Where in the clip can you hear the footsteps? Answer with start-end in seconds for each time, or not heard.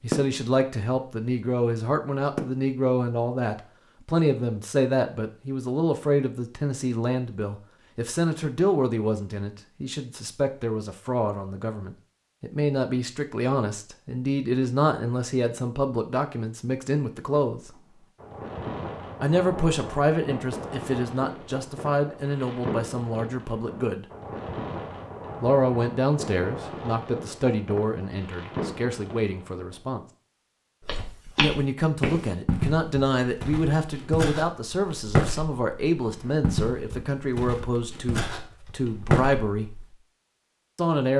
30.8-39.9.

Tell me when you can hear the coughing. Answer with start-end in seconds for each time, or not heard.
not heard.